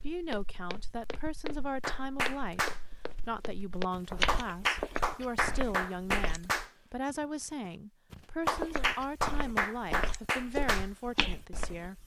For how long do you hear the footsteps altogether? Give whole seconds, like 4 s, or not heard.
10 s.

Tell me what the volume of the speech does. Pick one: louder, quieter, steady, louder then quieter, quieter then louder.
steady.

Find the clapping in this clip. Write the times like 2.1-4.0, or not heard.
1.8-3.2, 3.9-6.7, 8.1-11.3.